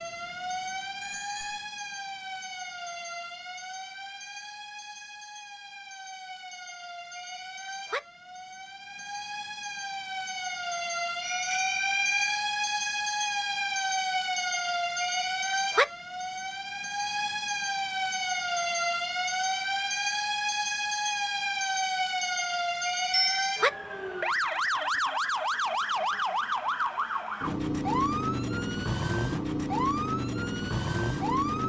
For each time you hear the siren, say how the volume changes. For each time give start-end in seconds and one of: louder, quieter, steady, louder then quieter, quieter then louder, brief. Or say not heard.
0.0-31.6 louder.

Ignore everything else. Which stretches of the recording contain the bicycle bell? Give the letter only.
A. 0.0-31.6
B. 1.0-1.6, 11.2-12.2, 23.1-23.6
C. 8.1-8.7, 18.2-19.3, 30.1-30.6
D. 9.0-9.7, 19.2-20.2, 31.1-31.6
B.